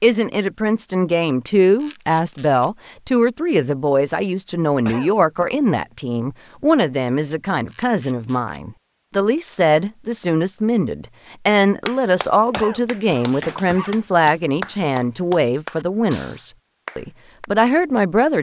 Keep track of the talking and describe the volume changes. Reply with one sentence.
The volume of the talking stays about the same.